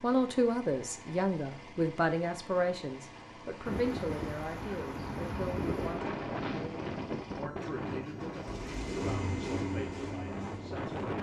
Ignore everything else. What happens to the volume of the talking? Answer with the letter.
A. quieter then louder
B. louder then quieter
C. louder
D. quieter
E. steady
D.